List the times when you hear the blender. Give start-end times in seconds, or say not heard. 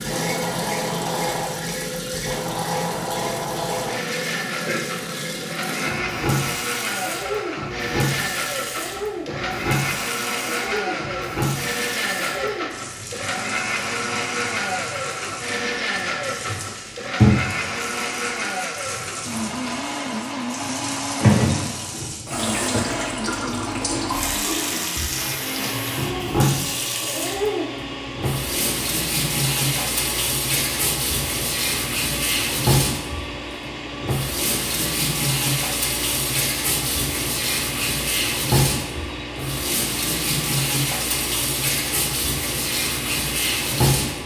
0.0-44.2.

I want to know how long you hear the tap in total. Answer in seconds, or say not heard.
44 s.